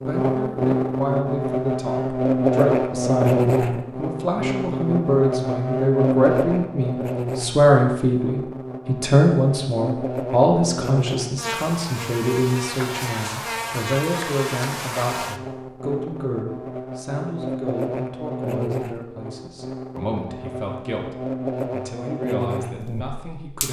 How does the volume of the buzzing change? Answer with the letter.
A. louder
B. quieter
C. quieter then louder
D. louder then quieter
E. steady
B.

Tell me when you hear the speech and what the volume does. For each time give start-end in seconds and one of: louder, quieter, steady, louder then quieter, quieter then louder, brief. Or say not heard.
0.0-23.6 louder then quieter.